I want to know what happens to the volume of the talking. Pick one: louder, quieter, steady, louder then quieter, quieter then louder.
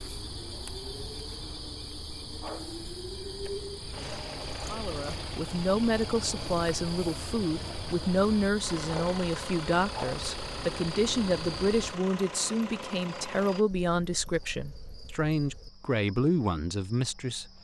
steady.